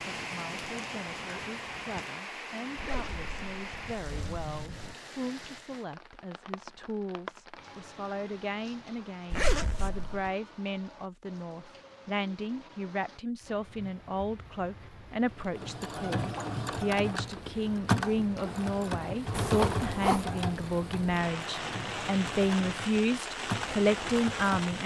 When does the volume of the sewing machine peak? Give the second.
18 s.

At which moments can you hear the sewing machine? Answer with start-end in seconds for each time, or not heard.
15.6-24.8.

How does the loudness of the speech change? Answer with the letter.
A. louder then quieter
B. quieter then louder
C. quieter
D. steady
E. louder
E.